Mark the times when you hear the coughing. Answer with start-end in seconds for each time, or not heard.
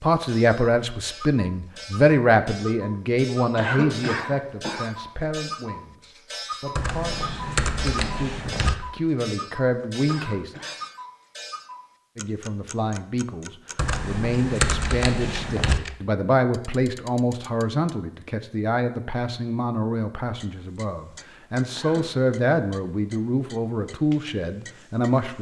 3.5-4.8, 10.1-10.8, 21.7-22.1.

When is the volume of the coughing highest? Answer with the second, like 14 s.
4 s.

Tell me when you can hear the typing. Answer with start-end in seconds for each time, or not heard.
6.8-8.8, 13.8-15.8.